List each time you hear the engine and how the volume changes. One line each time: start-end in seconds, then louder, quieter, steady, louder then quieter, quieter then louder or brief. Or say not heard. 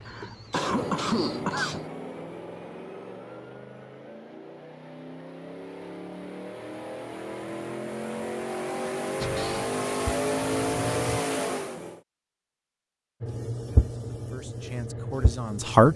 0.0-12.0 quieter then louder.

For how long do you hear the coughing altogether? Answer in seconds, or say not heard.
2 s.